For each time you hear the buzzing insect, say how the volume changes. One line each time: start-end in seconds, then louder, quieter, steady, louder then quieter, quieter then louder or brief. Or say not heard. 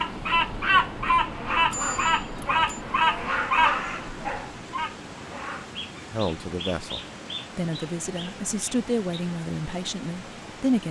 not heard.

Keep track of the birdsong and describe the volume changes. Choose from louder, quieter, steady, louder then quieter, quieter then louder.
quieter.